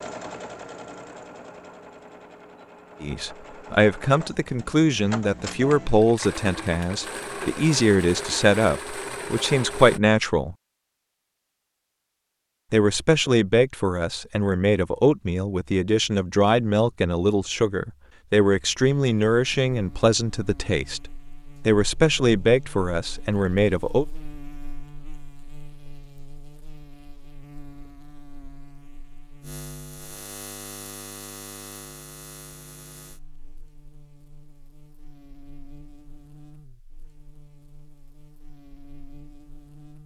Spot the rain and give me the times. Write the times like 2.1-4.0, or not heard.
not heard.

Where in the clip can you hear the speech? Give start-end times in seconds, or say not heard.
3.0-10.6, 12.7-21.0, 21.6-24.1.